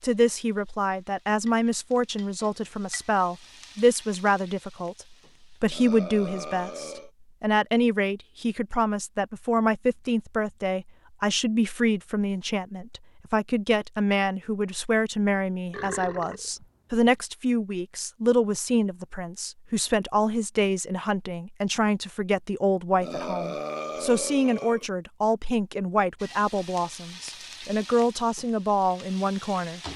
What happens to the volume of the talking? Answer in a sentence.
The volume of the talking stays about the same.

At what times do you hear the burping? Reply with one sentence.
The burping can be heard from 5.7 to 7.1 s, from 15.7 to 17.1 s and from 23.0 to 24.9 s.